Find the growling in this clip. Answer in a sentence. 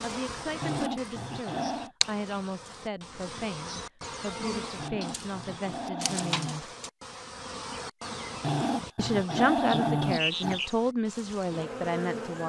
The growling can be heard from 0.6 to 1.9 s, from 4.8 to 6.6 s and from 8.4 to 10.6 s.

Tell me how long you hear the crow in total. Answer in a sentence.
The crow can't be heard in this clip.